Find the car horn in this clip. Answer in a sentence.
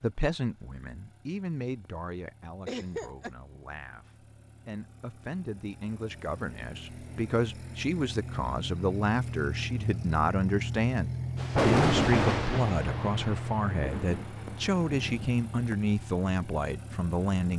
The car horn can't be heard in this clip.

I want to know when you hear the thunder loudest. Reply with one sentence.
The loudest moment of the thunder is at 12 seconds.